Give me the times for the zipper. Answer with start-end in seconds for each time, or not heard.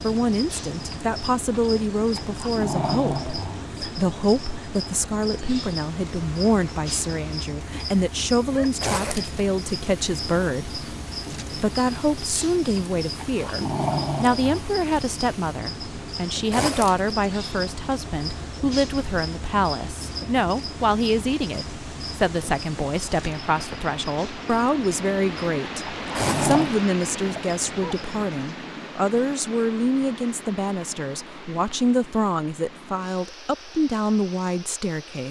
8.8-9.4, 16.5-17.1, 26.1-26.8.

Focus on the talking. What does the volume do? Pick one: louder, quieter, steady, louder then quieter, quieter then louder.
steady.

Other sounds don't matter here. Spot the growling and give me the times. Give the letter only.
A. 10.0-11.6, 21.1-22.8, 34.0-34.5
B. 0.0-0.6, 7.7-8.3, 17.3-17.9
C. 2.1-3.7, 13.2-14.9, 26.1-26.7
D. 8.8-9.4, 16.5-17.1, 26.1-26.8
C.